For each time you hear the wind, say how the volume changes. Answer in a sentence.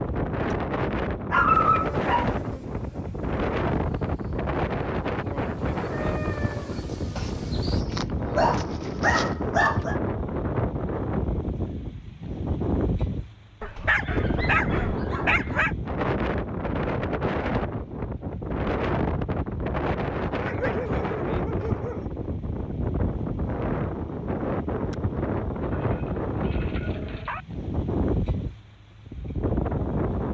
You can hear the wind from 0.0 to 30.2 s, at a steady volume.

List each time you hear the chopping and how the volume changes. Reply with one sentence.
You can't hear the chopping here.